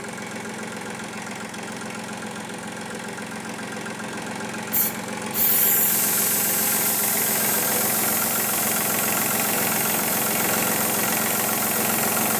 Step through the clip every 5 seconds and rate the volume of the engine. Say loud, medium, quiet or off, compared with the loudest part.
medium, loud, loud.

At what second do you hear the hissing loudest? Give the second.
6 s.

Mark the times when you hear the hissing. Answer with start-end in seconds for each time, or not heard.
4.7-12.3.